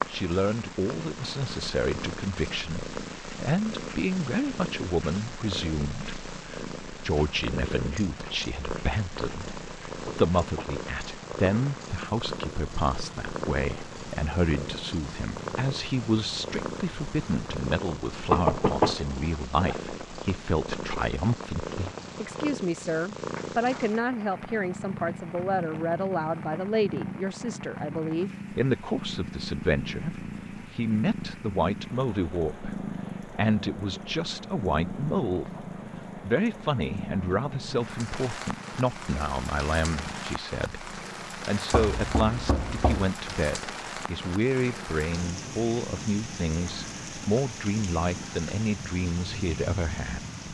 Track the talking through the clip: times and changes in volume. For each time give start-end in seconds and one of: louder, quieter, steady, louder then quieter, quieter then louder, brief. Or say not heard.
0.1-50.2 steady.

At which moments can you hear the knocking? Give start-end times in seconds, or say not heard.
10.1-10.8, 18.3-19.1, 41.7-43.1.